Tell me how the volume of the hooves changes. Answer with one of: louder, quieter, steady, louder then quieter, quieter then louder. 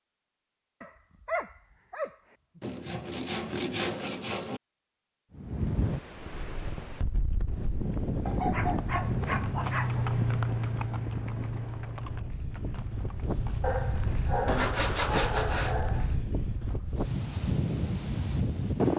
louder then quieter.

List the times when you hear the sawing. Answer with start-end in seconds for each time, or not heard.
2.6-4.6, 14.4-15.8.